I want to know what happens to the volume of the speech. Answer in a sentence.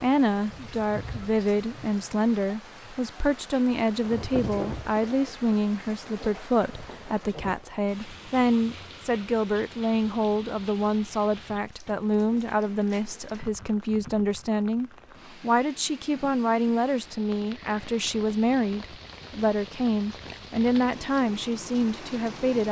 The loudness of the speech stays about the same.